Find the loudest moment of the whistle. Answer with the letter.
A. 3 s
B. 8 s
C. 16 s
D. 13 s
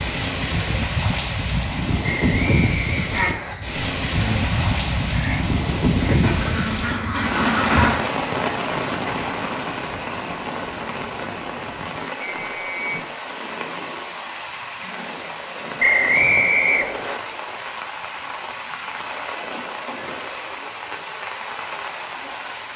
C.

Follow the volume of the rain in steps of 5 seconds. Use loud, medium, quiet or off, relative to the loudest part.
loud, loud, medium, medium, medium.